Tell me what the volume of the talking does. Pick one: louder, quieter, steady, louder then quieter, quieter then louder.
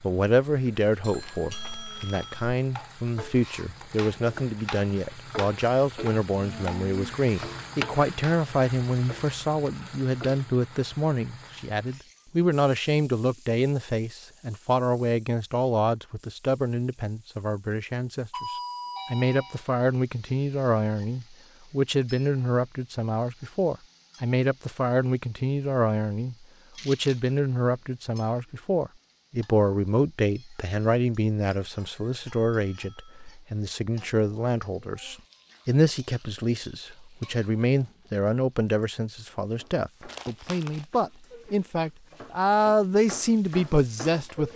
steady.